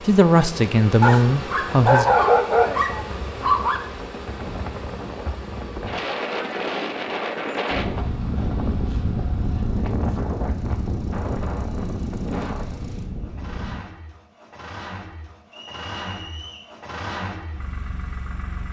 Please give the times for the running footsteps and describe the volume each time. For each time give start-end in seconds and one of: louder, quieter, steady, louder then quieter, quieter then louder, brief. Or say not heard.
not heard.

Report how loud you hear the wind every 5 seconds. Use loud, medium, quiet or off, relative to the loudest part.
medium, loud, loud, off.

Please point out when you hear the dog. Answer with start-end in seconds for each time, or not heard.
1.0-3.8.